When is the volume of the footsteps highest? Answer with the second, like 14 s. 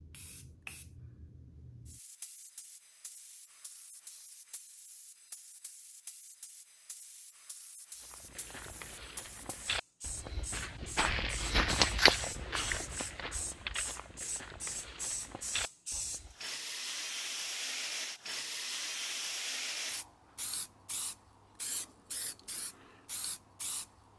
12 s.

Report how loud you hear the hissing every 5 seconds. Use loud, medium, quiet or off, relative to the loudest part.
quiet, quiet, medium, loud, medium.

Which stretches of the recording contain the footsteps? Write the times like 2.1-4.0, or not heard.
8.0-16.4.